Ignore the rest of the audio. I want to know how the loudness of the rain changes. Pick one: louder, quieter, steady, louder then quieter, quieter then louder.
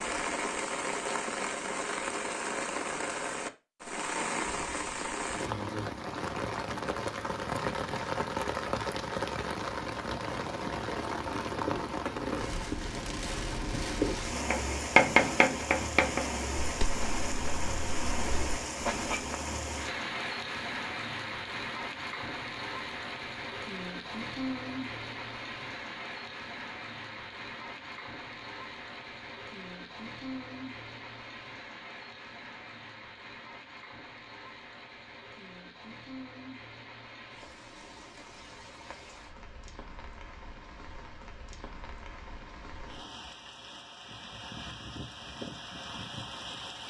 quieter.